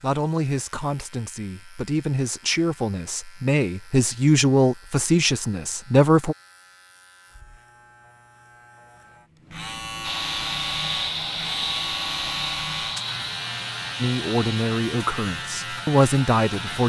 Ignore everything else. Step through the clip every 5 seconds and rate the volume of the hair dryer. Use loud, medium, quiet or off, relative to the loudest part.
off, off, loud, medium.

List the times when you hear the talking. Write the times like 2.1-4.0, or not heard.
0.0-6.3, 14.0-16.8.